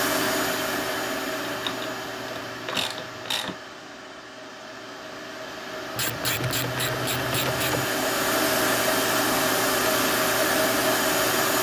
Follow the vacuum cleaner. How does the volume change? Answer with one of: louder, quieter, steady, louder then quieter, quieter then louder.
quieter then louder.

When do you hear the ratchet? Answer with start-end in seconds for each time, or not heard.
1.4-3.5, 6.0-7.8.